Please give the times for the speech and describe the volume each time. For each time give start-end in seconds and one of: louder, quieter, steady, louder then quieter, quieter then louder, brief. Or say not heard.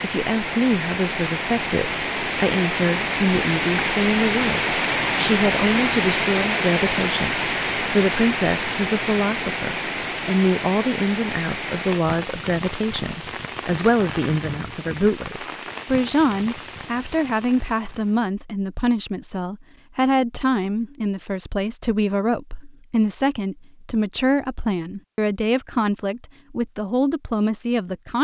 0.0-28.1 steady.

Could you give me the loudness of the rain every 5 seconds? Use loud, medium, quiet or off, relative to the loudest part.
loud, loud, medium, quiet, off, off.